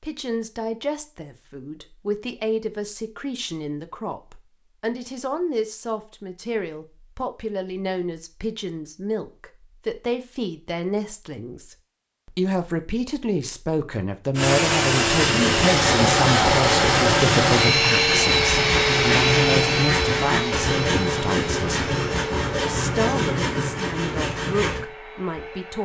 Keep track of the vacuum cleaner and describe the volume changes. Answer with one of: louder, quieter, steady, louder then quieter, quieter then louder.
quieter.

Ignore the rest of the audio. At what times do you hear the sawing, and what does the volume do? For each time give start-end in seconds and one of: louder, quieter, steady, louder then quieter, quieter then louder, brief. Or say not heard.
15.2-24.8 steady.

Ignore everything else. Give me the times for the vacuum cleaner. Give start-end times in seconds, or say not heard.
14.3-25.8.